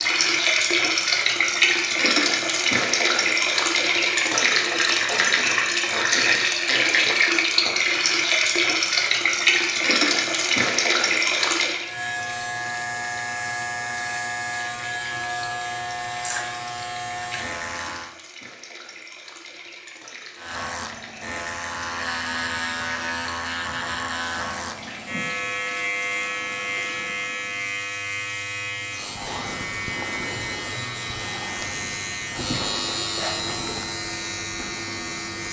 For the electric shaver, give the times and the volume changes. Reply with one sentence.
You can hear the electric shaver from 11.7 to 18.1 s, at a steady volume; and from 20.4 to 35.4 s, at a steady volume.